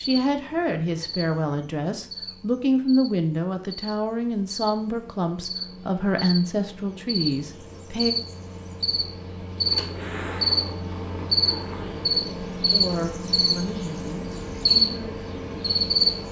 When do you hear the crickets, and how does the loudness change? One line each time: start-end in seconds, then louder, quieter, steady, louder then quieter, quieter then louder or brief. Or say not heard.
0.0-16.2 louder.